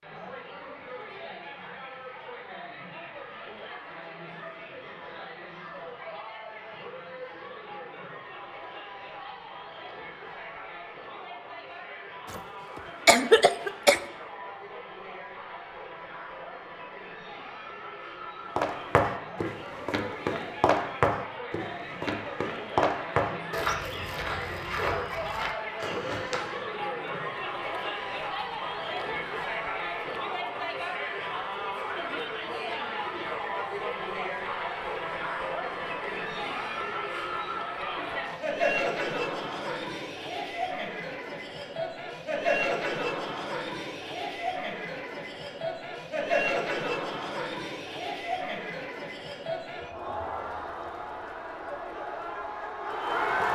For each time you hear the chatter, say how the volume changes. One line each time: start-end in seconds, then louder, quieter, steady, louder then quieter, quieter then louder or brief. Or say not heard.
0.0-53.5 louder.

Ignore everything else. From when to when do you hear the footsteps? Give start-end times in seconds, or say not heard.
18.6-26.6.